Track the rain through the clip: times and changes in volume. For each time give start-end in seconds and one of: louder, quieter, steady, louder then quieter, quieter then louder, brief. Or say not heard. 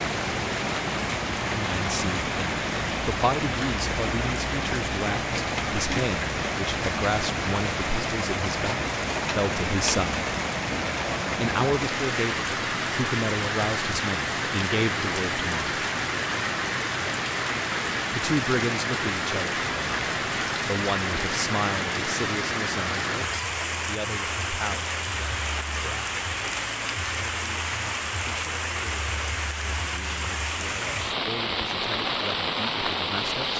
0.0-33.5 steady.